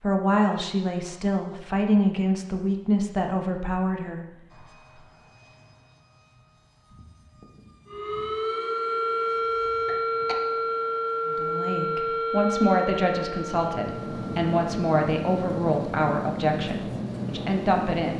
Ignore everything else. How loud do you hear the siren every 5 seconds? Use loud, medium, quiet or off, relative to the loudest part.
off, loud, loud, off.